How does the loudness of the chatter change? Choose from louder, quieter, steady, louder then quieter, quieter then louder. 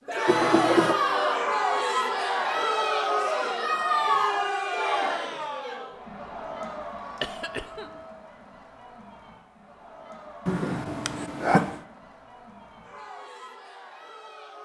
quieter.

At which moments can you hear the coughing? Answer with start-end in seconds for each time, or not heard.
0.2-0.9, 7.2-8.0, 10.4-11.8.